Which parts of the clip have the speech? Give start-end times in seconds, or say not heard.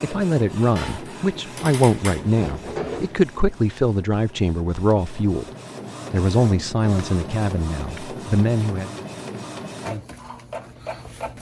0.0-5.5, 6.1-8.9.